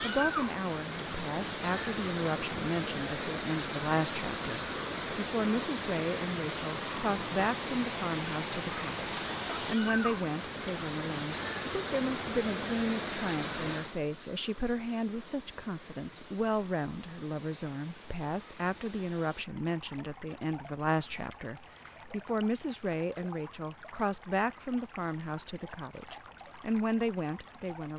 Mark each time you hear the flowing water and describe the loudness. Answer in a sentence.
You can hear the flowing water from 0.0 to 27.9 s, getting quieter.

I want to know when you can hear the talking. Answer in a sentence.
You can hear the talking from 0.0 to 27.9 s.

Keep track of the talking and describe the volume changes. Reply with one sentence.
The loudness of the talking stays about the same.